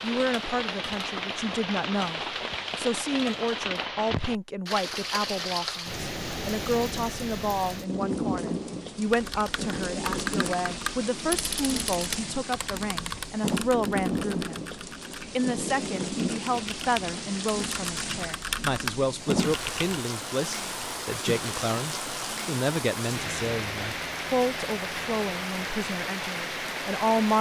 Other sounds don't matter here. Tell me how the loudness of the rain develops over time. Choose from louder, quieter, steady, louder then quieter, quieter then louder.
steady.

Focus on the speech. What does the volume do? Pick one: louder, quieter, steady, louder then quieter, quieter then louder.
steady.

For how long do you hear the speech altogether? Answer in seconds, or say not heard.
27 s.